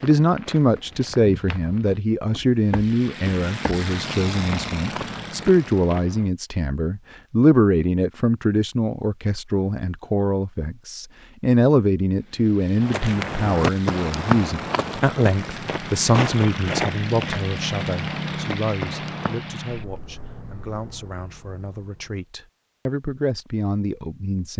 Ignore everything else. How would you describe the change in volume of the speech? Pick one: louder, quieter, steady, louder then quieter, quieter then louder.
quieter.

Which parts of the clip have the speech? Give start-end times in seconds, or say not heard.
0.0-24.5.